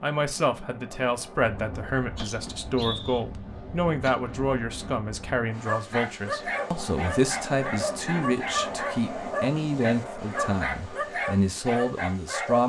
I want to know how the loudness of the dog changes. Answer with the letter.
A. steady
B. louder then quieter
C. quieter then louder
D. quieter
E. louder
A.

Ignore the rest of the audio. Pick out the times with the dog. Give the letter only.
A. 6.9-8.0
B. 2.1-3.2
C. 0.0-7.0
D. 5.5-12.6
D.